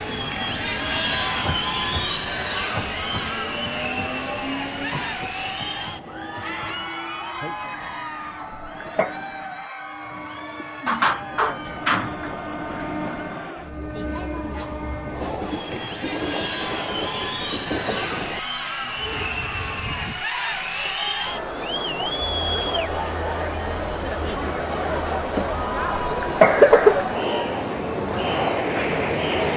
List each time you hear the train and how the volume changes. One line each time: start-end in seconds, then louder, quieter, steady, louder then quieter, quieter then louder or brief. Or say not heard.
0.0-20.2 quieter then louder
23.4-29.5 louder.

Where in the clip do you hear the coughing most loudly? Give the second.
27 s.